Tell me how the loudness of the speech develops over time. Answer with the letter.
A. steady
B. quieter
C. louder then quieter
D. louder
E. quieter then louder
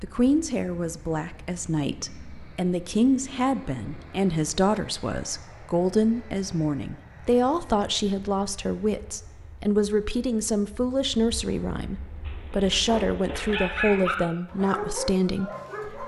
A.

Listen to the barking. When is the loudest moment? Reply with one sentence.
The loudest moment of the barking is at 14 seconds.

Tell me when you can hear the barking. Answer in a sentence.
The barking can be heard from 12.2 to 16.0 s.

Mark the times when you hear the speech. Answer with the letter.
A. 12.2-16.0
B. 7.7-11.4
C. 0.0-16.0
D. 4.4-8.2
C.